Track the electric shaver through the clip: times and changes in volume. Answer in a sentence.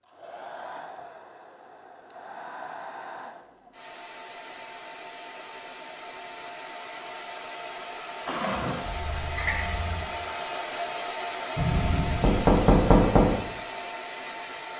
You can't hear the electric shaver here.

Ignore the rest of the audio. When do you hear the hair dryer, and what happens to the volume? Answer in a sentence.
You can hear the hair dryer from 0.0 to 14.7 s, getting louder.